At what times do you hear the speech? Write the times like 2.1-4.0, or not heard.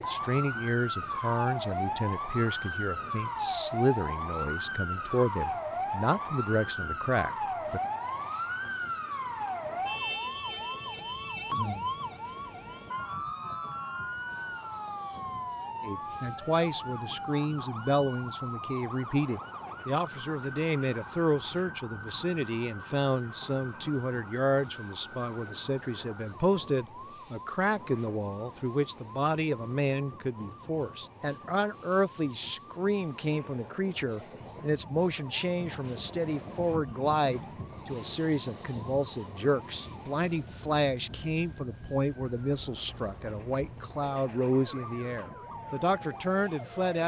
0.0-7.8, 15.8-47.0.